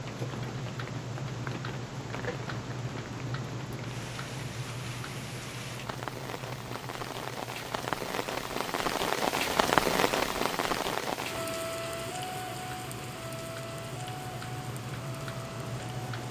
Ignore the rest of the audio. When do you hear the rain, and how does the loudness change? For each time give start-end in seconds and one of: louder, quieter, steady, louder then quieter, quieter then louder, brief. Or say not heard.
0.0-16.2 louder then quieter.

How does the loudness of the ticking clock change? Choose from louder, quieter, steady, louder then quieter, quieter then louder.
quieter then louder.